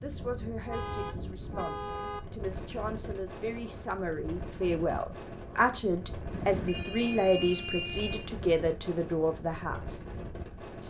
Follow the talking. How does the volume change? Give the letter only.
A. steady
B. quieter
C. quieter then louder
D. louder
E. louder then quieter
D.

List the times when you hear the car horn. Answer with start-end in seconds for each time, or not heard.
0.7-2.2, 6.3-8.3.